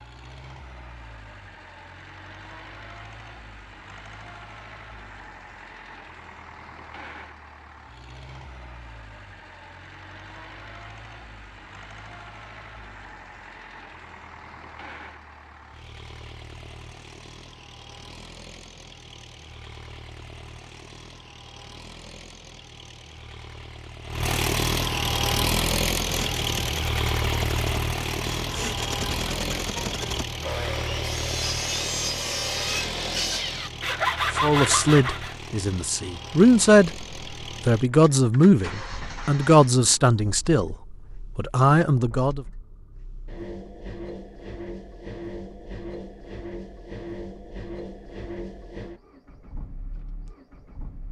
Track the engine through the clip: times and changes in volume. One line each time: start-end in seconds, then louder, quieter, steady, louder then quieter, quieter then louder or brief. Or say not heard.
0.0-51.0 louder then quieter.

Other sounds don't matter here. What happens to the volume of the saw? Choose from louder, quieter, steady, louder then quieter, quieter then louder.
louder.